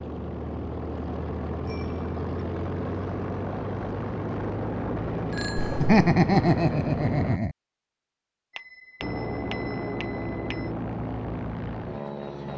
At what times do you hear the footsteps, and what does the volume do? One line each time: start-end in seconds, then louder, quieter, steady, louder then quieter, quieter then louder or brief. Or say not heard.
not heard.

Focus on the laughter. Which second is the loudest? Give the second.
6 s.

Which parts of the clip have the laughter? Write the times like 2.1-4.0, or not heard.
5.5-7.5.